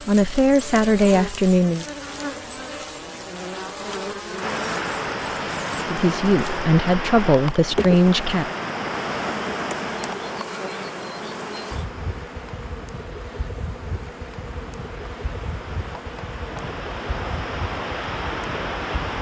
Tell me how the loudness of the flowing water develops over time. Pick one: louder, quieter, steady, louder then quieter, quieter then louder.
quieter then louder.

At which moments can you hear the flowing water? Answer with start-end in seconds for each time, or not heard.
4.4-19.1.